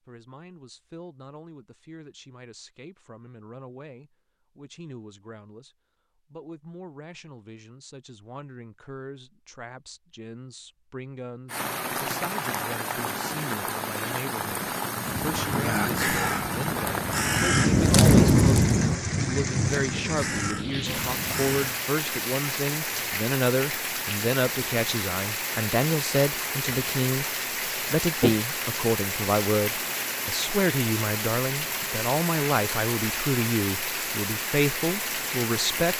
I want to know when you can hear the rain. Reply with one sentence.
You can hear the rain from 11.4 to 35.9 s.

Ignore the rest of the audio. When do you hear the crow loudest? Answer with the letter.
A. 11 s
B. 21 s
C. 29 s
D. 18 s
D.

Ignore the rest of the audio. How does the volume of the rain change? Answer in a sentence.
The loudness of the rain stays about the same.